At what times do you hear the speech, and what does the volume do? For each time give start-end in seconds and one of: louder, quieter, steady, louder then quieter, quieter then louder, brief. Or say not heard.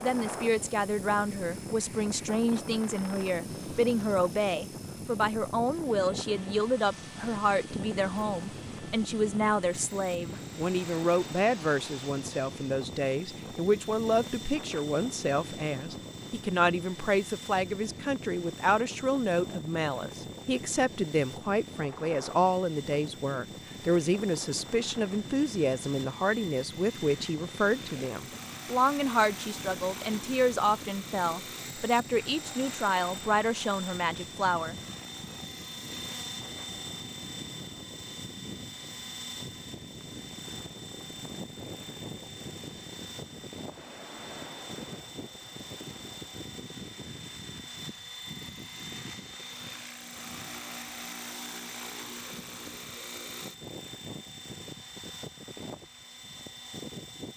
0.0-34.8 steady.